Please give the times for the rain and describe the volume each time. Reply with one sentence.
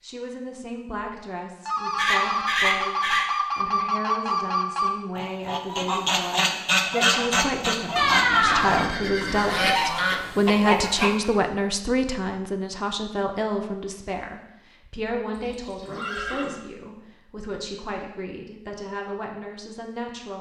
The rain can't be heard in this clip.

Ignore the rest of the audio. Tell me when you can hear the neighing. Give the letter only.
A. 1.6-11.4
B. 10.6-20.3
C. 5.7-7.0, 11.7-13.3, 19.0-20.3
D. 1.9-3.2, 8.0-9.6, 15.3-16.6
D.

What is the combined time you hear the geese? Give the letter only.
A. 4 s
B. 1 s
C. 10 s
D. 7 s
C.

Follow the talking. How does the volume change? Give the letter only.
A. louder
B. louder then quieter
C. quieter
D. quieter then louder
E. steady
B.